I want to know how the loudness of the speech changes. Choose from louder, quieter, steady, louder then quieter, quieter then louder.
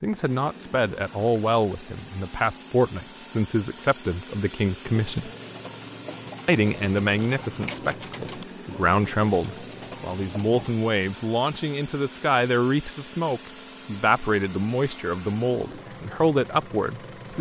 steady.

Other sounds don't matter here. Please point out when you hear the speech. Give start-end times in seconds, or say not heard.
0.0-5.3, 6.5-17.3.